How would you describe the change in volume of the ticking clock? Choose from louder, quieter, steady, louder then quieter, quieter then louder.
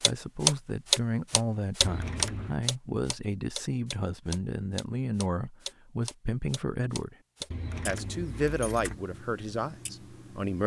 quieter.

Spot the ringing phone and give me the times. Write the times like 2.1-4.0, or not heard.
not heard.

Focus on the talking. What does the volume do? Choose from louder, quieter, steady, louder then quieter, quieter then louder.
steady.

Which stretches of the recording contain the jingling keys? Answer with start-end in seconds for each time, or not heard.
1.8-2.5, 7.5-9.0.